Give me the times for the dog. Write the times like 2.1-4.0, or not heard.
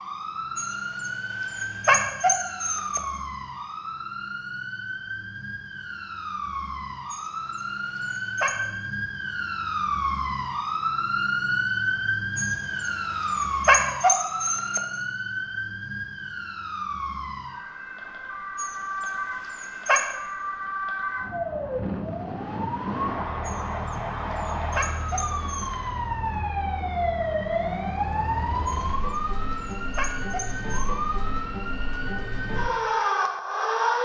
0.6-3.0, 7.1-8.6, 12.3-14.8, 18.6-20.1, 23.4-25.7, 28.6-30.9.